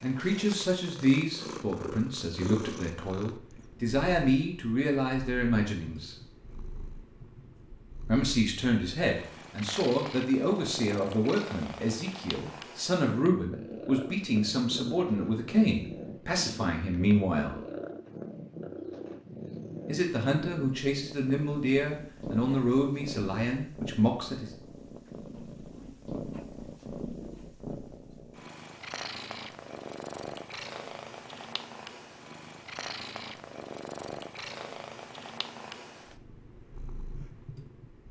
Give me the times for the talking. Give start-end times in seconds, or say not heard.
0.0-6.2, 8.1-17.6, 19.9-24.5.